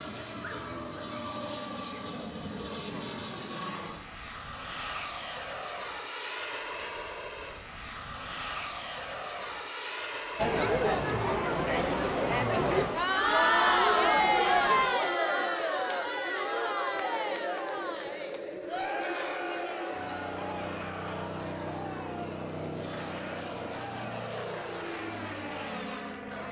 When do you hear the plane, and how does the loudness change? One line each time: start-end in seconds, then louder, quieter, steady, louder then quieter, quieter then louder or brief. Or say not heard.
0.0-26.4 steady.